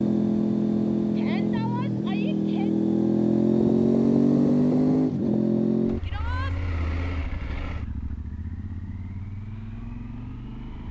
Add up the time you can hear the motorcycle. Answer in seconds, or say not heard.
11 s.